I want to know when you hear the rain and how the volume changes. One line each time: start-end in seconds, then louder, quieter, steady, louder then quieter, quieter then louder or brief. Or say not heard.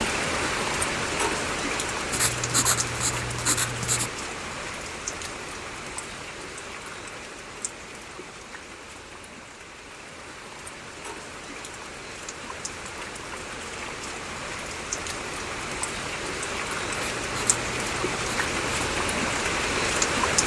0.0-20.4 quieter then louder.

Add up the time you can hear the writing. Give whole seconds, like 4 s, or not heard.
4 s.